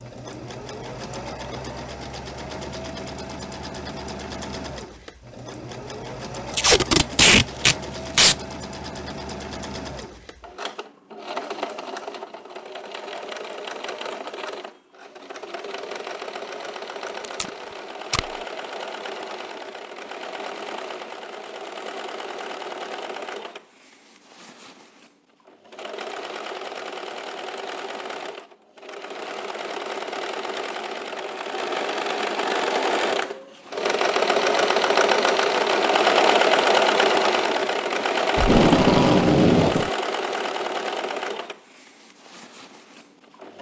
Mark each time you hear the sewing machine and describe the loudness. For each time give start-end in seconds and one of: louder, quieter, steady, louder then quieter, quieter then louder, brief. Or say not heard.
0.0-43.5 louder.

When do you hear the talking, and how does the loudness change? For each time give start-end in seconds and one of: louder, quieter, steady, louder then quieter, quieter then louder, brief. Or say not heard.
not heard.